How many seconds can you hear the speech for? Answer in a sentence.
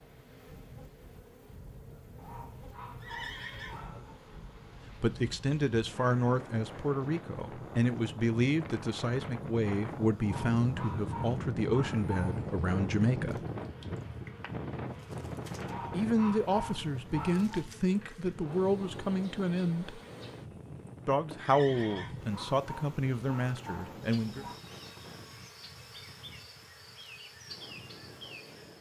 The speech can be heard for 16 seconds in total.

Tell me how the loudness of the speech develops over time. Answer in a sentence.
The loudness of the speech stays about the same.